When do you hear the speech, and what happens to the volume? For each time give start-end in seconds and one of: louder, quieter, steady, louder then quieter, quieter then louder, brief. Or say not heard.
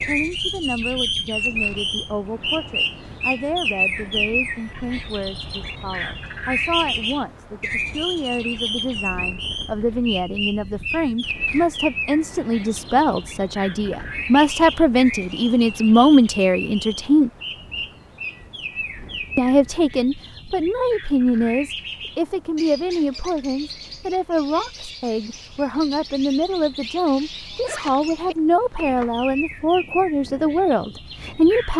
0.0-17.3 louder
19.4-31.7 steady.